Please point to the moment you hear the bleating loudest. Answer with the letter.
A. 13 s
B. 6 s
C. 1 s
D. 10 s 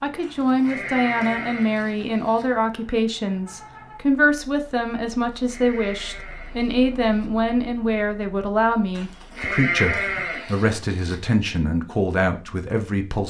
D.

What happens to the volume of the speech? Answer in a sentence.
The loudness of the speech stays about the same.